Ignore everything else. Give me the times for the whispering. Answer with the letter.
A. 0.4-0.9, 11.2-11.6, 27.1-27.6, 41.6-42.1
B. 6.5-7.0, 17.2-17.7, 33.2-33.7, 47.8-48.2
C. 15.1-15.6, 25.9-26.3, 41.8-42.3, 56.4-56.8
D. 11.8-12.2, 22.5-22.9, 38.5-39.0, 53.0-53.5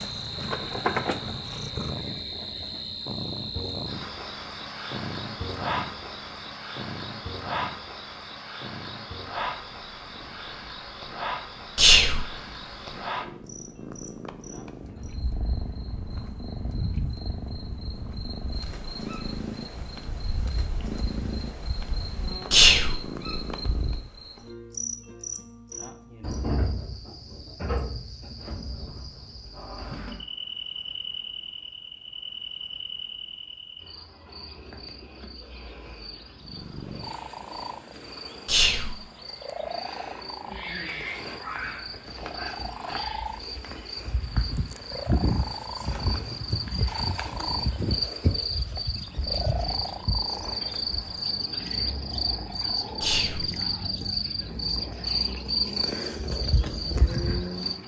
D.